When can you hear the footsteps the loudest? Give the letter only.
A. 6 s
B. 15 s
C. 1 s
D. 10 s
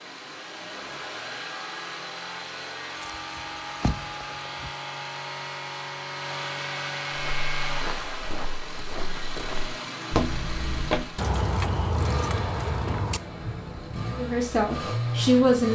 D.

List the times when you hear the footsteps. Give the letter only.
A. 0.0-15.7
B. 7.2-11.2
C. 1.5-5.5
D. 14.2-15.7
B.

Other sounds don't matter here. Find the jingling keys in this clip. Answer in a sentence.
You can hear the jingling keys from 3.1 to 4.7 s and from 11.2 to 13.2 s.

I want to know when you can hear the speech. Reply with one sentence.
You can hear the speech from 14.2 to 15.7 s.